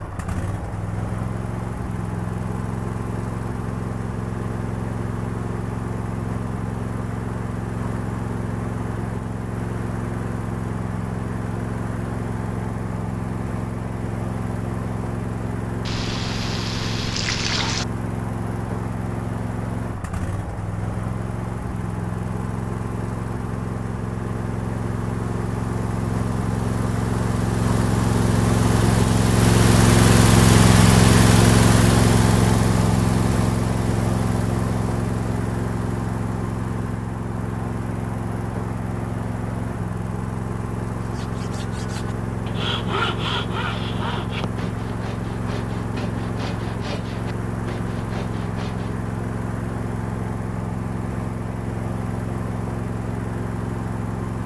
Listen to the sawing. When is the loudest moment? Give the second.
43 s.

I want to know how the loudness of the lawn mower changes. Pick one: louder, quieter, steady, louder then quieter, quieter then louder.
louder then quieter.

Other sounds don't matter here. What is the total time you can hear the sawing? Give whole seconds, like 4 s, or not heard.
8 s.